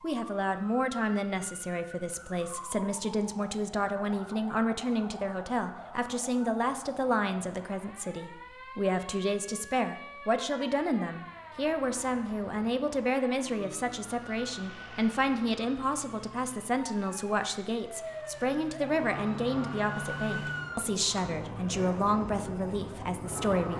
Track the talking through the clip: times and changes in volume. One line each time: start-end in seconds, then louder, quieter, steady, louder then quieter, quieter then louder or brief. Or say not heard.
0.0-23.7 steady.